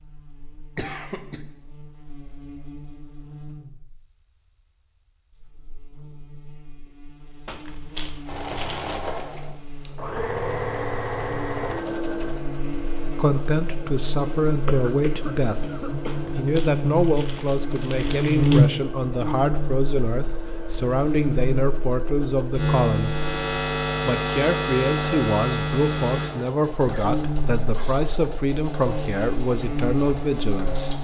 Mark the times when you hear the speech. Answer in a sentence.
You can hear the speech from 13.2 to 15.6 s, from 16.4 to 23.2 s and from 24.1 to 30.9 s.